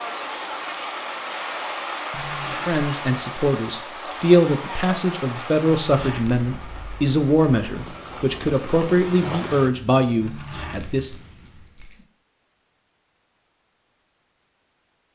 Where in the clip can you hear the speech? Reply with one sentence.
The speech can be heard from 2.6 to 11.1 s.